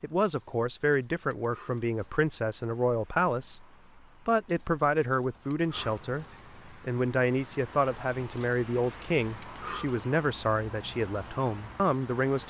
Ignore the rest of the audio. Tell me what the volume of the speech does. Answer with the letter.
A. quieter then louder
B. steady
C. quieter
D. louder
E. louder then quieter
B.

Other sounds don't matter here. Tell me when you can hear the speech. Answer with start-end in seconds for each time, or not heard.
0.0-3.6, 4.2-12.4.